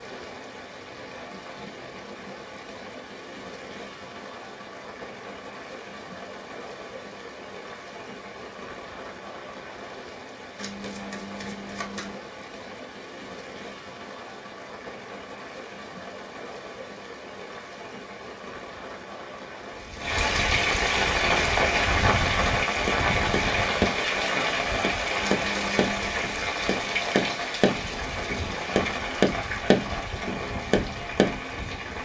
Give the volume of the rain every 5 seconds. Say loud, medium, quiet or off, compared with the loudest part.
quiet, quiet, quiet, quiet, loud, medium, medium.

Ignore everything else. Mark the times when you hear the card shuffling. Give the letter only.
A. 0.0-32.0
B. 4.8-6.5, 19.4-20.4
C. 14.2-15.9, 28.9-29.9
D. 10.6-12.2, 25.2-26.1
D.